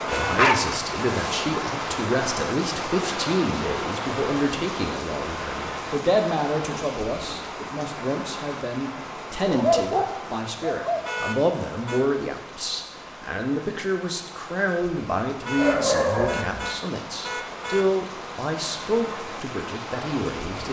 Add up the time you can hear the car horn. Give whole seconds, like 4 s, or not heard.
4 s.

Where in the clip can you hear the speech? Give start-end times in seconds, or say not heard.
0.1-20.6.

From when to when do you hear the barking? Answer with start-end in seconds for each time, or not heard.
0.1-1.4, 9.4-11.1, 15.6-16.7.